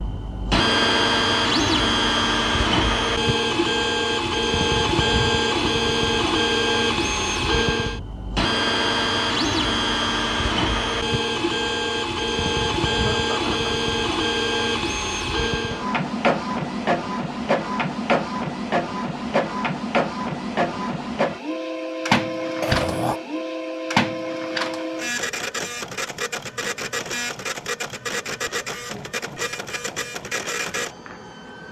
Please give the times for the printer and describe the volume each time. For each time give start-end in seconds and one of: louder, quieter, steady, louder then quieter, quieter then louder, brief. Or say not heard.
0.0-31.6 quieter.